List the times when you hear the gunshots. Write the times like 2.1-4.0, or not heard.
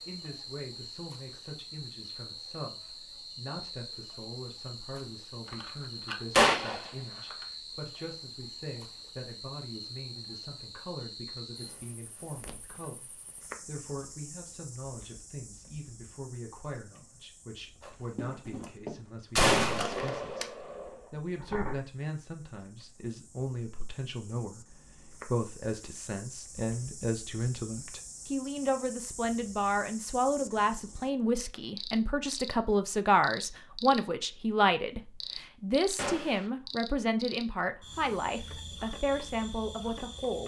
5.5-7.3, 17.9-21.8, 36.0-36.5.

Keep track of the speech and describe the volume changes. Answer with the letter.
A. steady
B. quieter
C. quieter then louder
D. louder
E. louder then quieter
D.